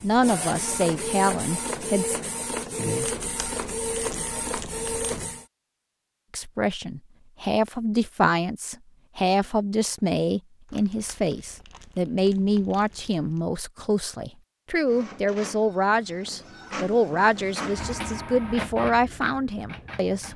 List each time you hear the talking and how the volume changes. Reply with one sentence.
The talking can be heard briefly from 0.0 to 2.2 s; and from 6.3 to 20.3 s, at a steady volume.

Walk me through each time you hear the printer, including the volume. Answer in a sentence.
The printer can be heard from 0.0 to 5.5 s, at a steady volume; and from 14.8 to 20.3 s, getting louder then quieter.